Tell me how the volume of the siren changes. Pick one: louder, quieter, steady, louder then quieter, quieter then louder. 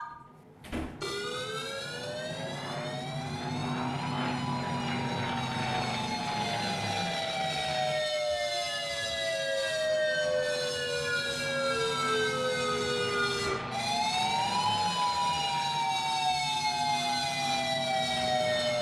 louder.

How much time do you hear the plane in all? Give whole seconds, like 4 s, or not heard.
19 s.